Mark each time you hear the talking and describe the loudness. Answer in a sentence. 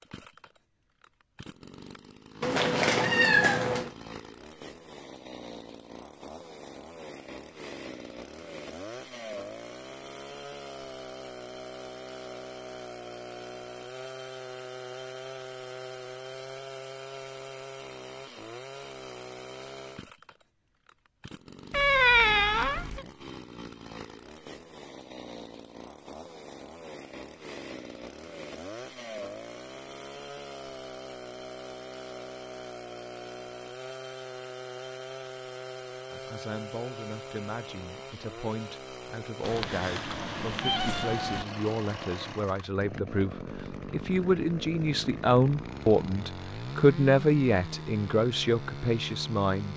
The talking can be heard from 36.1 to 49.7 s, getting louder.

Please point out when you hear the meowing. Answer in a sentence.
The meowing can be heard from 2.4 to 3.9 s, from 21.7 to 23.1 s and from 39.4 to 41.5 s.